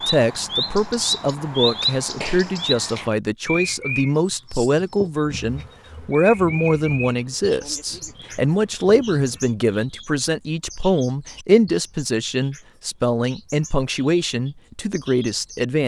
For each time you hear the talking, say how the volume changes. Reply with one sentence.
The talking can be heard from 0.1 to 15.8 s, at a steady volume.